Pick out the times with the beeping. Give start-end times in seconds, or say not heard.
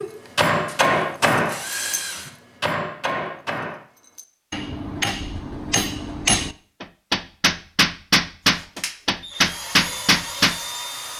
not heard.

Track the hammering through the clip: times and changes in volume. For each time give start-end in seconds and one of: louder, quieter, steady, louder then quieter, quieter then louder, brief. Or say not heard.
0.3-10.6 quieter then louder.